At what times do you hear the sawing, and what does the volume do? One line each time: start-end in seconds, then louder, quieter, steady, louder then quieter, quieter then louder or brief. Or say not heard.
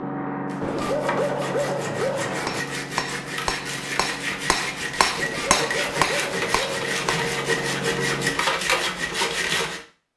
0.5-9.8 louder.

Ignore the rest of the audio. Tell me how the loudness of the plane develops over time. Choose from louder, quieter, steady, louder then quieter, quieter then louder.
quieter then louder.